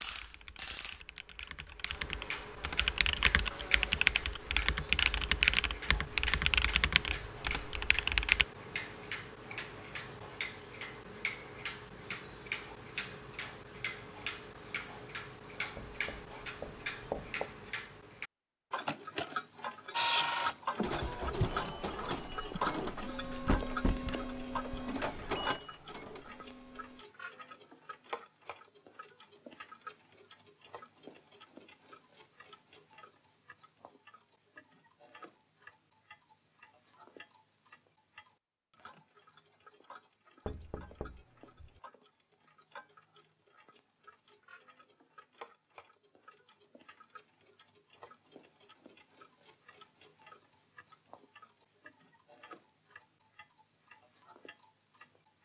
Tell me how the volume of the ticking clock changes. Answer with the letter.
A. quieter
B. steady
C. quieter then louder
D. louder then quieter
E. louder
A.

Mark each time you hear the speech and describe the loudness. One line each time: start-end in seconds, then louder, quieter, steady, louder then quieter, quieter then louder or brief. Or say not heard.
not heard.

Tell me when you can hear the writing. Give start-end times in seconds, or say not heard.
15.8-17.5.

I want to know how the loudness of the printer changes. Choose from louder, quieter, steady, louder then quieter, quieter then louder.
quieter.